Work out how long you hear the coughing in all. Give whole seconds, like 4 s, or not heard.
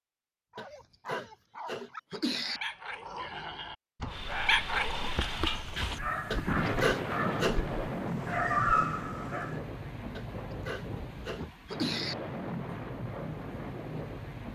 5 s.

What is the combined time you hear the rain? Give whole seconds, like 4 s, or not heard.
10 s.